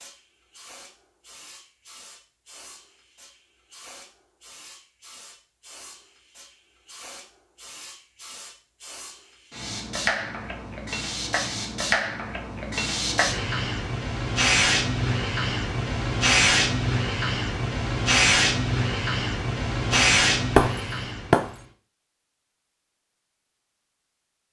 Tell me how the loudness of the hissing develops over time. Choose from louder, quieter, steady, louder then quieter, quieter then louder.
louder.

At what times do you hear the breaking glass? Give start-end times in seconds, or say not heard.
19.9-21.4.